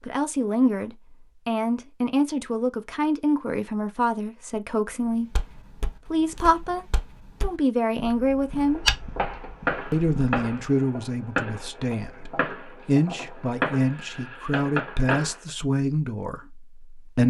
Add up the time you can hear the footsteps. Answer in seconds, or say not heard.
5 s.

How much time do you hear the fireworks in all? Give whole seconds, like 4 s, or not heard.
7 s.